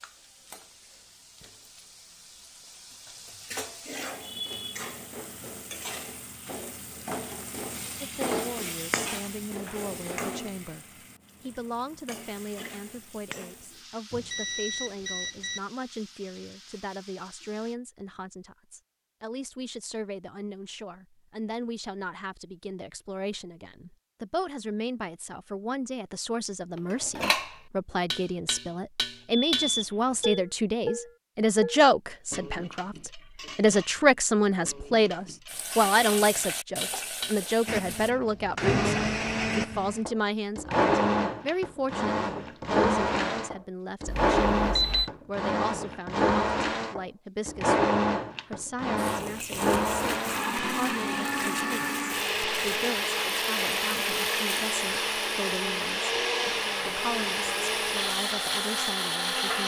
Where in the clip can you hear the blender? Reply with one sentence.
You can hear the blender from 37.6 to 59.6 s.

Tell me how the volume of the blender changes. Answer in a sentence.
The volume of the blender stays about the same.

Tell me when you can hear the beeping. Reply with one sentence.
The beeping can be heard from 14.1 to 15.6 s, from 29.3 to 30.4 s and from 44.0 to 45.1 s.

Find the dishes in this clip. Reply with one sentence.
The dishes can be heard from 26.8 to 37.5 s.